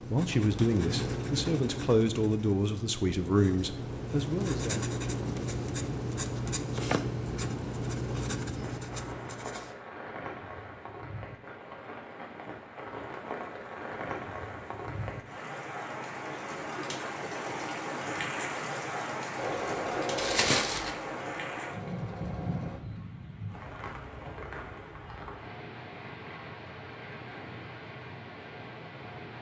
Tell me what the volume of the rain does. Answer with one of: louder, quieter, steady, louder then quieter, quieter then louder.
louder then quieter.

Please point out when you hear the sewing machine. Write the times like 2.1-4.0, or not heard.
19.4-22.8.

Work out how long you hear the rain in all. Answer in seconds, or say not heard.
21 s.